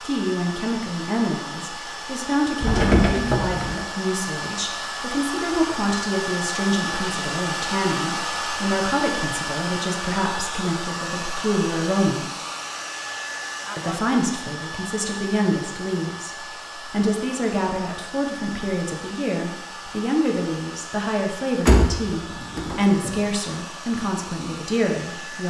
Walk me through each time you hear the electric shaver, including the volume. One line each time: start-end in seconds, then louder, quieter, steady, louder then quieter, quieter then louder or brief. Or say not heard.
not heard.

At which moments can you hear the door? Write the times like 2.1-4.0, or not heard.
2.6-3.8, 21.6-23.1.